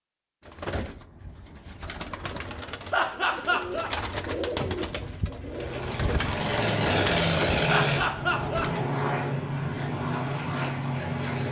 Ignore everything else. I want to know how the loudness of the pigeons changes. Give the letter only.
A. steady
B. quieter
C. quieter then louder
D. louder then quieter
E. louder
E.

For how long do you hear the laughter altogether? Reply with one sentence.
You can hear the laughter for 2 seconds altogether.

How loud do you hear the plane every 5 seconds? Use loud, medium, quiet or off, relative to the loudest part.
off, loud, loud.